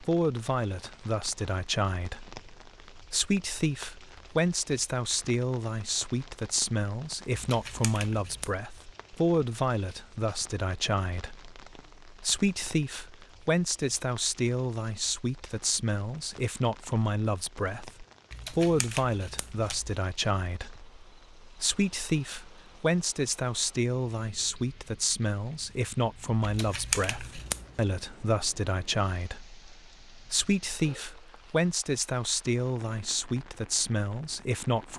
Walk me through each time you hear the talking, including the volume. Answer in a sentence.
The talking can be heard from 0.0 to 34.9 s, at a steady volume.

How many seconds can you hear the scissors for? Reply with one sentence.
You can hear the scissors for 4 seconds altogether.